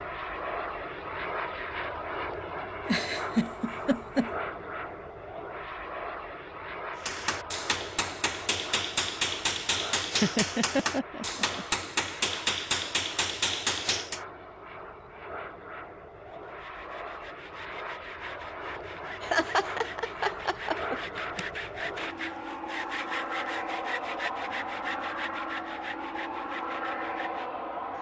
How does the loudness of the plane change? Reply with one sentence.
The volume of the plane goes down, then up.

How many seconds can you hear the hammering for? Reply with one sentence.
You can hear the hammering for 7 seconds altogether.